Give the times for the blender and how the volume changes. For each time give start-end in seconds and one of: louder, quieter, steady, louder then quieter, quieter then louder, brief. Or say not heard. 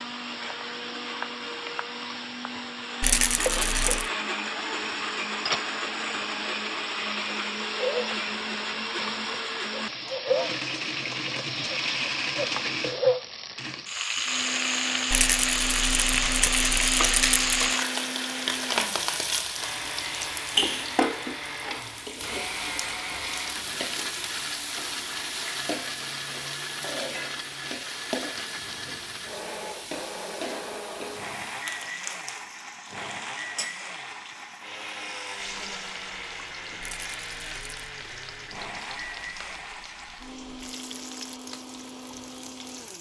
0.0-42.9 quieter.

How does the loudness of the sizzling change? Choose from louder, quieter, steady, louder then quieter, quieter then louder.
louder then quieter.